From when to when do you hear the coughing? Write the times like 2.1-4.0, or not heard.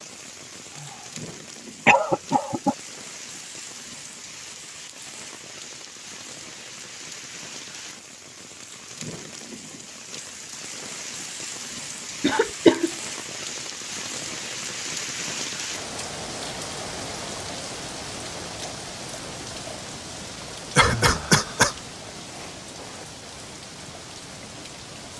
1.9-2.8, 12.2-12.9, 20.8-21.8.